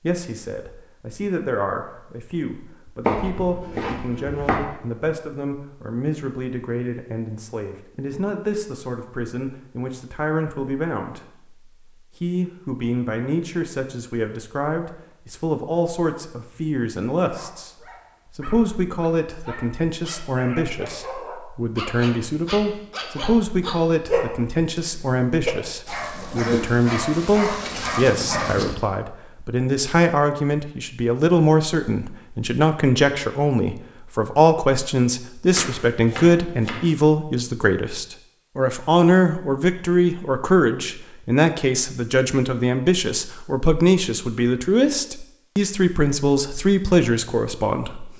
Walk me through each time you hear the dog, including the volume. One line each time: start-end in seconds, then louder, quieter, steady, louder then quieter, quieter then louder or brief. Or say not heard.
17.2-28.8 louder.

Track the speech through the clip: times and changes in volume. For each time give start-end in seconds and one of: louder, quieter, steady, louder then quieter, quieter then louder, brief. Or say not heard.
0.0-48.1 louder.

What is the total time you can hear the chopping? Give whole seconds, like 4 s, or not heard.
3 s.